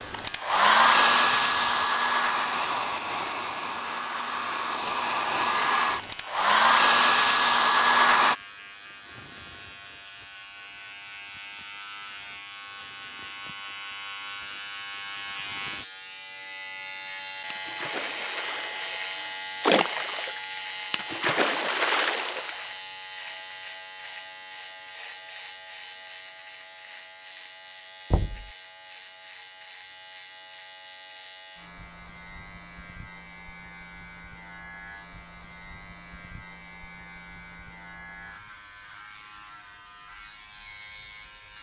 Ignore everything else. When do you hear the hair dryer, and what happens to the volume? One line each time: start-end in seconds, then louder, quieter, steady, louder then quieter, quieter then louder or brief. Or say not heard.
0.0-8.3 quieter then louder.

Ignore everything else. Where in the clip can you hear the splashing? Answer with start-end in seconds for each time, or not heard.
17.5-22.7.